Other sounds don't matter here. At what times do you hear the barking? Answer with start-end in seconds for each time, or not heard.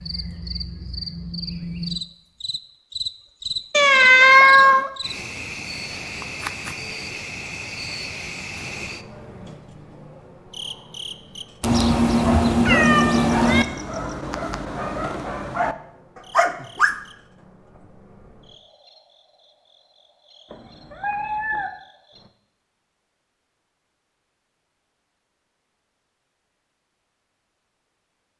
12.1-17.0.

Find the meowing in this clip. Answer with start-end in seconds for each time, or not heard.
3.7-4.9, 11.6-13.7, 20.5-21.7.